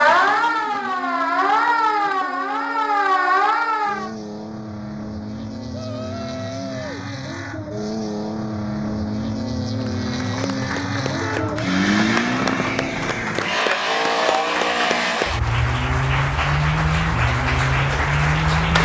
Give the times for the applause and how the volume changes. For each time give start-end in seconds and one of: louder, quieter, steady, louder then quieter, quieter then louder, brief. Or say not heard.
9.8-18.7 louder.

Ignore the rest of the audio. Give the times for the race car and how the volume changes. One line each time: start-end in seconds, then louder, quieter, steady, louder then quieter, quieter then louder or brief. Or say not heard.
0.0-18.7 louder.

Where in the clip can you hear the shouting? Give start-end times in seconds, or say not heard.
5.7-7.0, 11.2-11.6.